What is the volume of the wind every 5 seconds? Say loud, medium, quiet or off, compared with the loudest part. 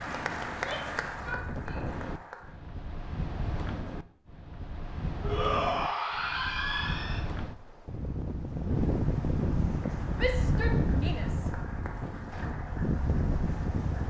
medium, loud, loud.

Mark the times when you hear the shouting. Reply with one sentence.
You can hear the shouting from 0.5 to 1.9 s, from 5.2 to 7.2 s and from 10.2 to 11.5 s.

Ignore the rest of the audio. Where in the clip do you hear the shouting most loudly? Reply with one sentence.
The loudest moment of the shouting is at 6 seconds.